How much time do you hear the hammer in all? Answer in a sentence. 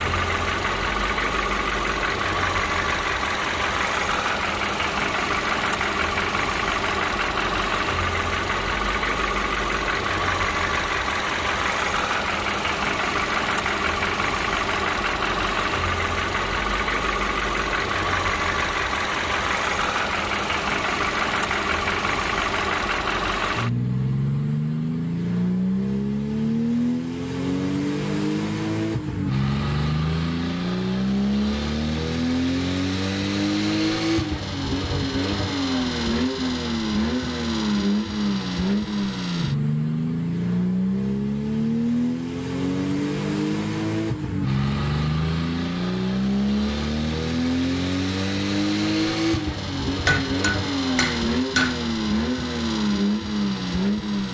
The hammer can be heard for 2 seconds in total.